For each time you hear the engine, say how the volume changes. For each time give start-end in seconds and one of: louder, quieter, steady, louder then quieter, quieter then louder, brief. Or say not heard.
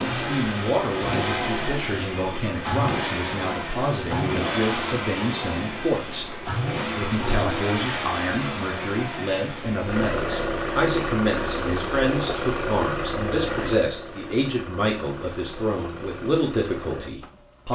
0.0-17.7 quieter.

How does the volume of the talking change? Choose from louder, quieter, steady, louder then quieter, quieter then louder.
steady.